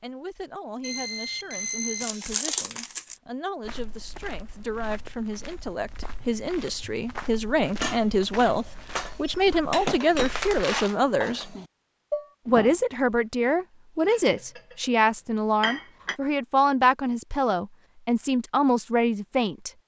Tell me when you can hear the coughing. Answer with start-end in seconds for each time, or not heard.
not heard.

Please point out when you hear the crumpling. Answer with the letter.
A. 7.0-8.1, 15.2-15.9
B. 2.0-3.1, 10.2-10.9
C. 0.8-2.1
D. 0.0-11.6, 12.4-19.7
B.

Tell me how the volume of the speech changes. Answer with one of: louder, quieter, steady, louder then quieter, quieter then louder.
louder.